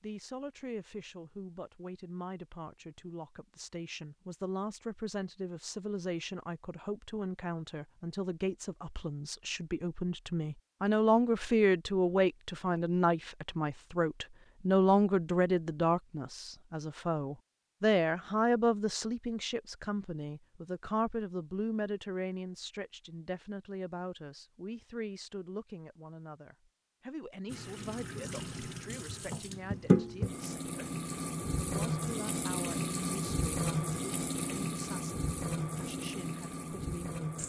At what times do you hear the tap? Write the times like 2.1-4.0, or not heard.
27.4-37.4.